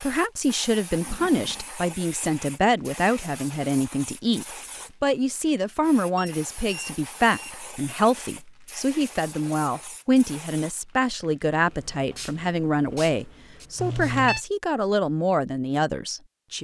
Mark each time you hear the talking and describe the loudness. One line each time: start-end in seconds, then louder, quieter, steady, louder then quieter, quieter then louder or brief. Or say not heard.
0.0-16.6 steady.